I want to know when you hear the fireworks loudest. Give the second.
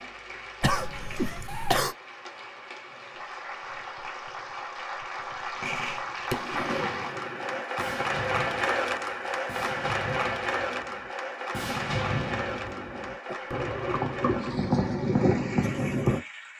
15 s.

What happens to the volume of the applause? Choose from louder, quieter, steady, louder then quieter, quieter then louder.
louder then quieter.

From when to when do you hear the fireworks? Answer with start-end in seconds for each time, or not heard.
5.5-16.2.